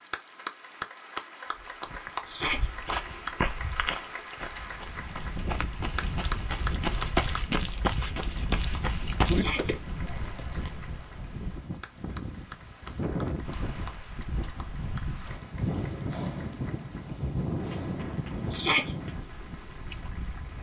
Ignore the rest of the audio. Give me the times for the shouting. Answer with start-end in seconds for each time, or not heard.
2.2-2.7, 9.2-9.8, 18.5-18.9.